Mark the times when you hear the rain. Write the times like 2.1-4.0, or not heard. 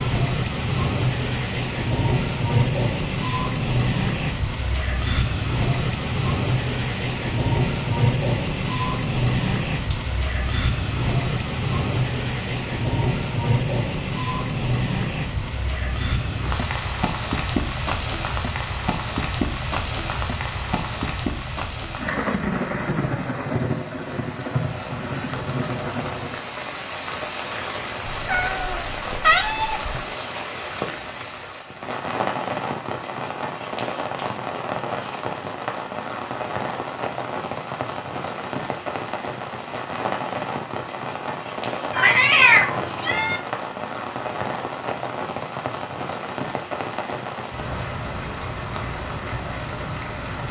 0.0-50.4.